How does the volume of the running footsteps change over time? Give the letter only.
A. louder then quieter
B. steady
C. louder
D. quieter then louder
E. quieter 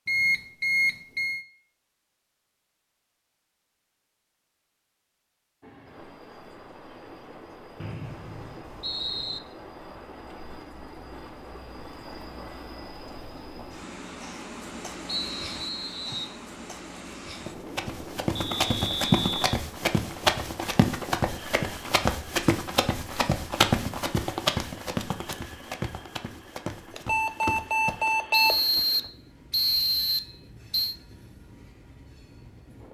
E.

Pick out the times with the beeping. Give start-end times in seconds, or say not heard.
0.1-1.4, 18.4-19.5, 26.9-28.6.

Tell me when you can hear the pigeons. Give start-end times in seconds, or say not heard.
not heard.